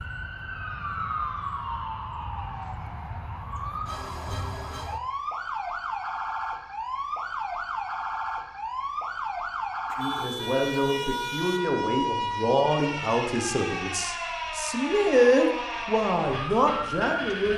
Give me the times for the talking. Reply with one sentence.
The talking can be heard from 9.9 to 17.5 s.